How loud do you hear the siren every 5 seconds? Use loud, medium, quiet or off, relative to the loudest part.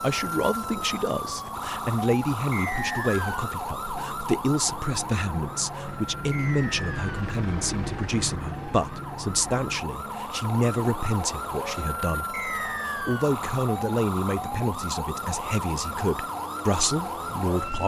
loud, medium, loud, loud.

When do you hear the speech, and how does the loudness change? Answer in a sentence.
The speech can be heard from 0.0 to 17.8 s, at a steady volume.